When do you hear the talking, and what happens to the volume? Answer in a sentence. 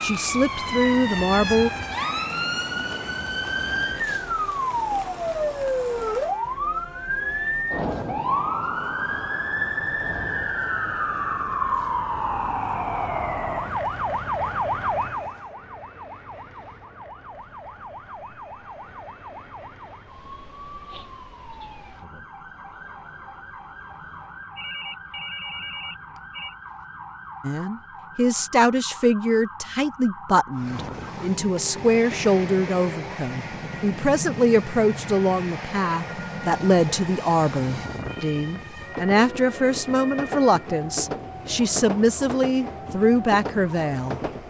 The talking can be heard briefly from 0.0 to 1.7 s; and from 27.4 to 44.2 s, at a steady volume.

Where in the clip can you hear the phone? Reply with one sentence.
You can hear the phone from 24.6 to 26.6 s.